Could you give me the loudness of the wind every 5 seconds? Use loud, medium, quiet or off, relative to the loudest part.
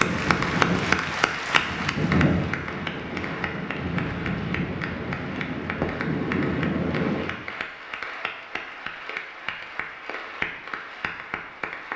loud, loud, off.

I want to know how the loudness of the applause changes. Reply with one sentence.
The loudness of the applause goes down.